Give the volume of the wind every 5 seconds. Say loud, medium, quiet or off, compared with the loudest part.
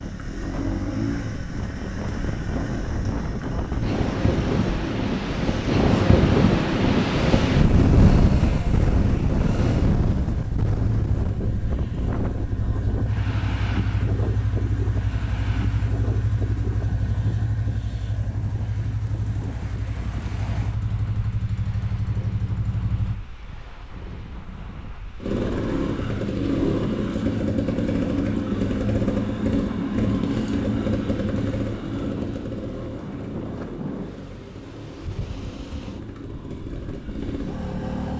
medium, loud, medium, quiet, quiet, quiet, quiet, quiet.